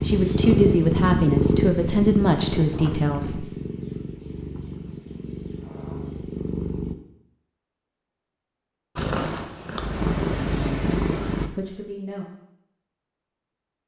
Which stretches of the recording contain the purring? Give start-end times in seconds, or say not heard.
0.0-7.0, 8.9-11.5.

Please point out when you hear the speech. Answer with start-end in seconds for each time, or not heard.
0.0-3.5, 10.3-12.2.